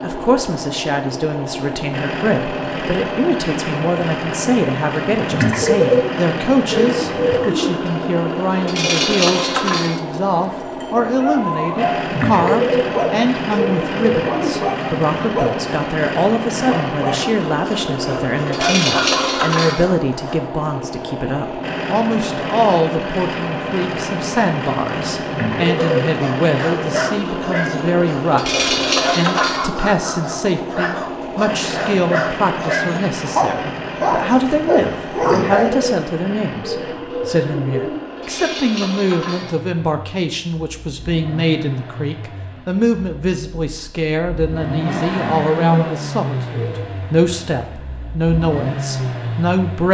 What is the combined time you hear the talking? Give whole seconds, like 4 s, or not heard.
50 s.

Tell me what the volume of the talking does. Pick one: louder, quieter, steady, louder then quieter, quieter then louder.
steady.